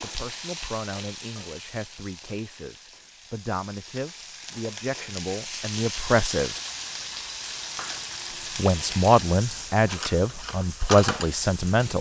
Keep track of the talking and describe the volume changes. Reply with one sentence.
The loudness of the talking goes up.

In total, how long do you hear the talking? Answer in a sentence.
You can hear the talking for 10 seconds altogether.